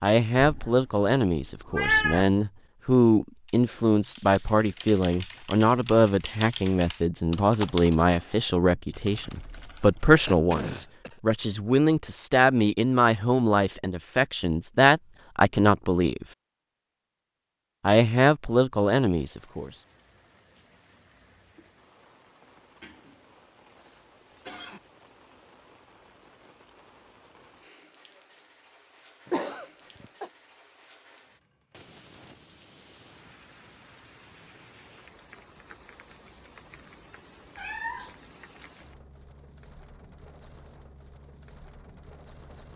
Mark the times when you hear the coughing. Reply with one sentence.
You can hear the coughing from 10.2 to 11.2 s, from 22.8 to 24.8 s and from 29.2 to 30.3 s.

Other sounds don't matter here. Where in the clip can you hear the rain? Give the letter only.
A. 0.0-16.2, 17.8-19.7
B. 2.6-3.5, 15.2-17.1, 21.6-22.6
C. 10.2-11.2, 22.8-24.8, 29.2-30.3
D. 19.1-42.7
D.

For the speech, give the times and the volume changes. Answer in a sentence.
You can hear the speech from 0.0 to 16.2 s, at a steady volume; and briefly from 17.8 to 19.7 s.